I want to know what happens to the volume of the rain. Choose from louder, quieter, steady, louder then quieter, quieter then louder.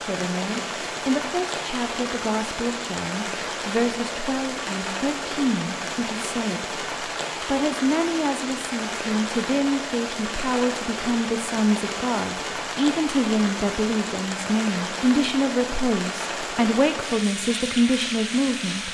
steady.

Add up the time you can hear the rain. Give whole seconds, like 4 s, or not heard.
19 s.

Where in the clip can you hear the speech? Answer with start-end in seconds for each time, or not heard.
0.1-18.8.